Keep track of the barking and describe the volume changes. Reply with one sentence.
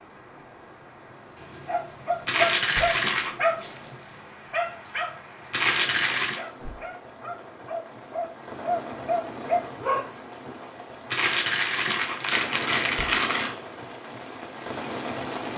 The loudness of the barking goes down, then up.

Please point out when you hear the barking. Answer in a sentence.
The barking can be heard from 1.4 to 10.6 s.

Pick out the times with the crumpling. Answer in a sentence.
You can hear the crumpling from 2.2 to 3.4 s, from 5.5 to 6.4 s and from 11.1 to 13.6 s.